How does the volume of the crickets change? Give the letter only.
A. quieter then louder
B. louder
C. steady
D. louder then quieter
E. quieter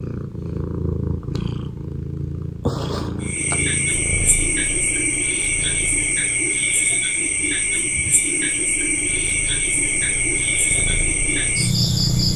C.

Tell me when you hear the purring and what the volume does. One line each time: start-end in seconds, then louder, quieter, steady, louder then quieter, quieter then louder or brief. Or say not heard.
0.0-12.3 quieter then louder.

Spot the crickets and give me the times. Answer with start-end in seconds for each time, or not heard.
3.2-12.3.